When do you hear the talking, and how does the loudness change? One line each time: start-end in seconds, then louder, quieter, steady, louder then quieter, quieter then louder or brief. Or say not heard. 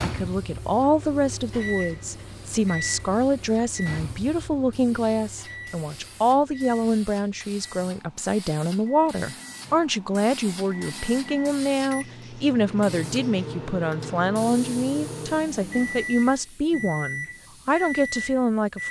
0.0-18.8 steady.